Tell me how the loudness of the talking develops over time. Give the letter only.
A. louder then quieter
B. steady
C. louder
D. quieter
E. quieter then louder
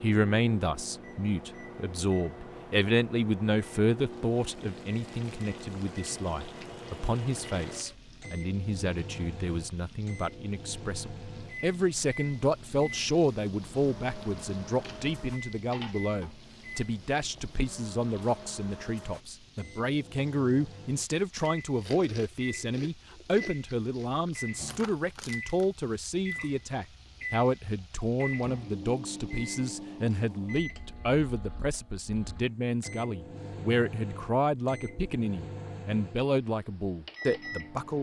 B.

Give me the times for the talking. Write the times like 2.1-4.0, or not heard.
0.0-37.9.